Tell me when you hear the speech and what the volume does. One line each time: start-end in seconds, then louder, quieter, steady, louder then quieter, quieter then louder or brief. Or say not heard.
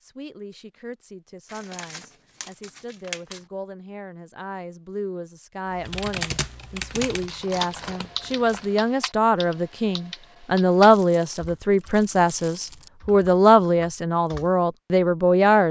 0.0-15.6 louder.